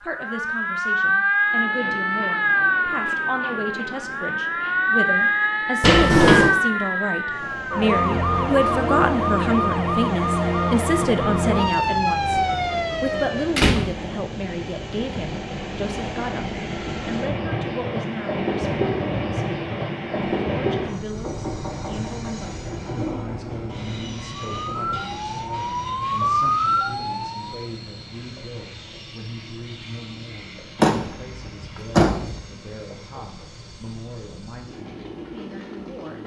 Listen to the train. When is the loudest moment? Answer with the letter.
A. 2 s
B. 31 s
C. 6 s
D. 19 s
D.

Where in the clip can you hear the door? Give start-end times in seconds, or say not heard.
5.8-6.5, 13.1-13.9, 30.8-32.4.